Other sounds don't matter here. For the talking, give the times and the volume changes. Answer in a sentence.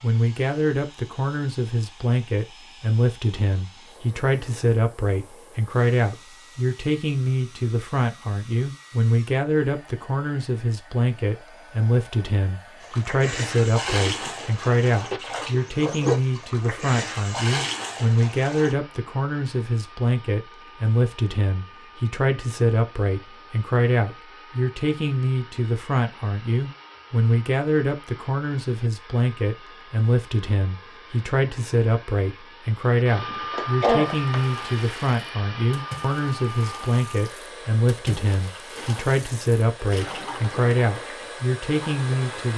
You can hear the talking from 0.0 to 42.5 s, at a steady volume.